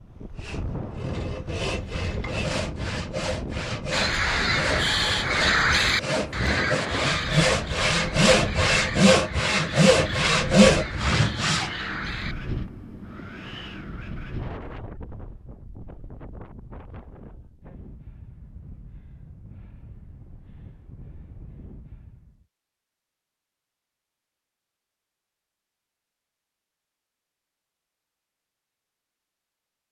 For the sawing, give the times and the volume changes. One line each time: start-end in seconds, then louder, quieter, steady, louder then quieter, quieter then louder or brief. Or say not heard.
0.3-11.7 louder.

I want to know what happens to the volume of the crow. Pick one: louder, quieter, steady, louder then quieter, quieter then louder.
quieter.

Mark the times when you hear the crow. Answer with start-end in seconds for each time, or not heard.
3.9-12.7.